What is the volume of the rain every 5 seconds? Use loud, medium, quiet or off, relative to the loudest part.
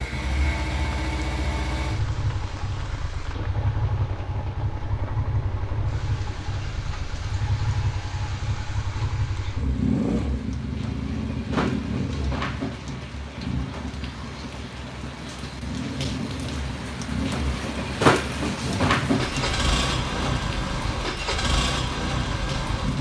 quiet, quiet, medium, loud, medium.